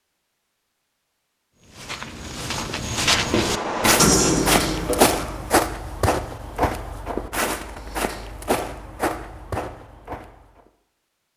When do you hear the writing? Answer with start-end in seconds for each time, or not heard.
2.7-5.5.